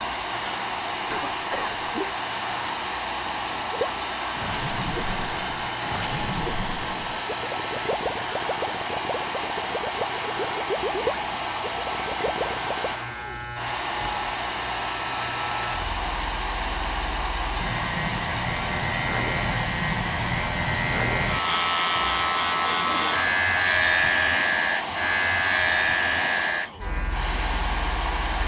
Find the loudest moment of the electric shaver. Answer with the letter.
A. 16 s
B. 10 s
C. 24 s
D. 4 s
C.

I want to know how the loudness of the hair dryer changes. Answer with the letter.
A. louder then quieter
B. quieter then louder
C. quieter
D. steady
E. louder
D.